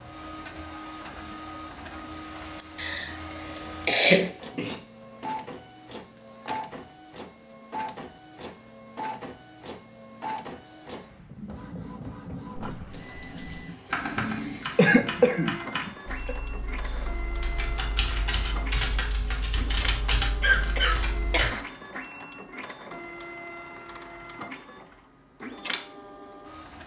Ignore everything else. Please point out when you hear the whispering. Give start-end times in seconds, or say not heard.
not heard.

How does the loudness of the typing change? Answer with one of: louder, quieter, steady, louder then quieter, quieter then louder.
quieter then louder.